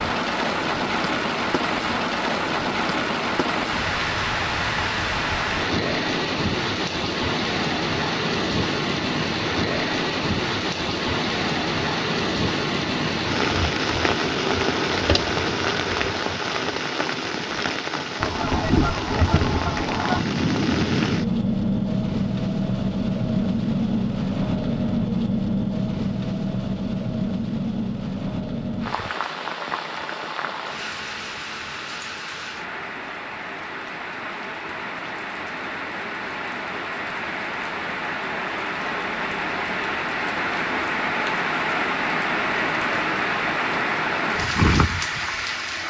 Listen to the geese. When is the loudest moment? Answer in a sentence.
The volume of the geese peaks at 19 seconds.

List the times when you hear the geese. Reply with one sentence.
The geese can be heard from 18.2 to 20.2 s.